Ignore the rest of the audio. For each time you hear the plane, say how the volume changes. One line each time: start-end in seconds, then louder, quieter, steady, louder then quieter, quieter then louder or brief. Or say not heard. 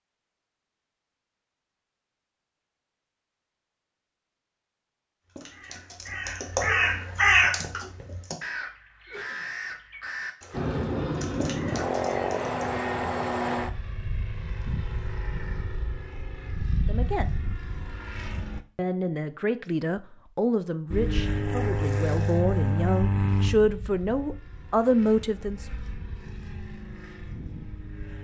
10.5-18.6 quieter
20.9-28.1 quieter then louder.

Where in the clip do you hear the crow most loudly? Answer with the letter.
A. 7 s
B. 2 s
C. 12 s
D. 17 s
A.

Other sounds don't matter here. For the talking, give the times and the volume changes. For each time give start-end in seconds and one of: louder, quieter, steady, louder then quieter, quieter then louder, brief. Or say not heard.
16.9-17.4 brief
18.8-25.6 louder.